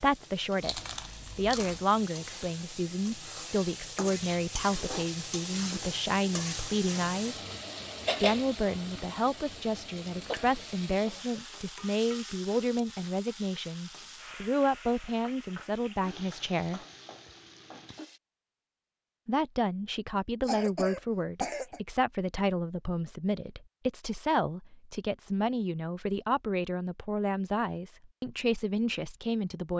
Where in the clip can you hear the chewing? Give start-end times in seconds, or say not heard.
0.6-1.8.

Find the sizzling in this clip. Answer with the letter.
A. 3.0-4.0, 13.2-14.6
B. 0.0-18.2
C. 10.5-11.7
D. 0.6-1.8
B.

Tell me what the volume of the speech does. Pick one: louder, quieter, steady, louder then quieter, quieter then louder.
steady.